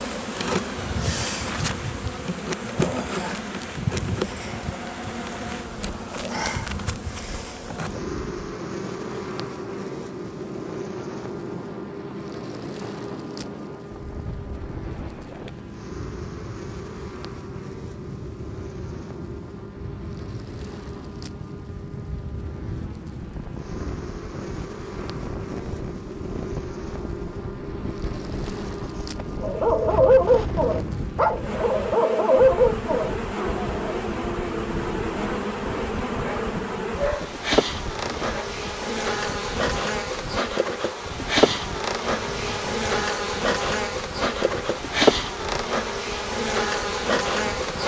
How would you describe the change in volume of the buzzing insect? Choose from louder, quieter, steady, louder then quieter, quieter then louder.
quieter then louder.